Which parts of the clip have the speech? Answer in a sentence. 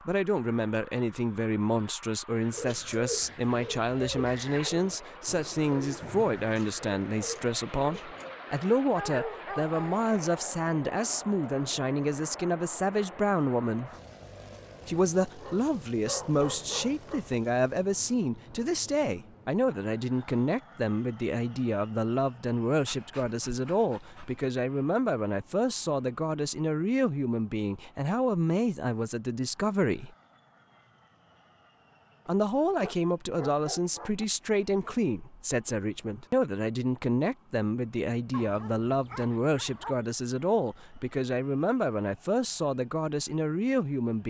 The speech can be heard from 0.1 to 13.9 s, from 14.8 to 30.1 s and from 32.2 to 44.2 s.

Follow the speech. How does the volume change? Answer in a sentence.
The loudness of the speech stays about the same.